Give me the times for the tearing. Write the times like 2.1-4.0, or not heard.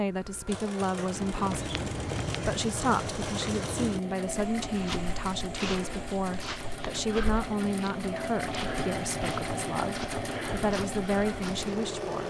not heard.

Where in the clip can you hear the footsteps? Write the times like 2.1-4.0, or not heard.
1.1-11.8.